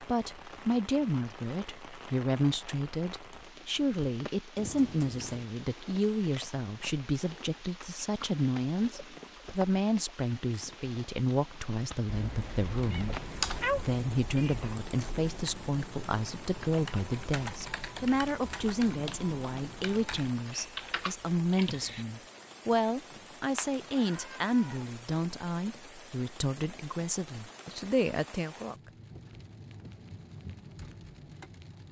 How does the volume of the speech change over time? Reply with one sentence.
The volume of the speech stays about the same.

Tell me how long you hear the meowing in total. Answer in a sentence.
The meowing can be heard for 5 seconds in total.